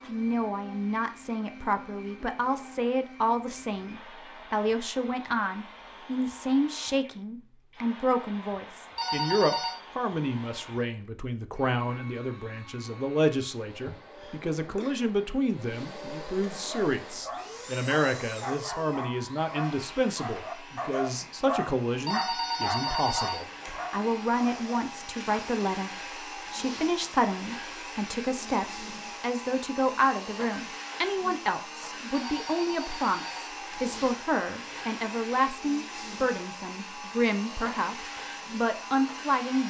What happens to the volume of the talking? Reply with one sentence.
The loudness of the talking stays about the same.